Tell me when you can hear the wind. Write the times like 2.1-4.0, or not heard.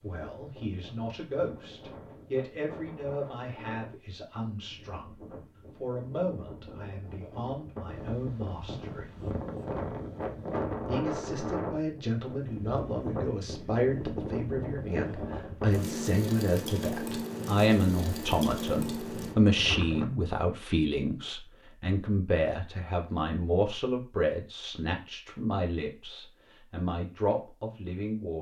0.0-20.1.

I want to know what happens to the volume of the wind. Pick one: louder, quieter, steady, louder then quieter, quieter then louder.
louder.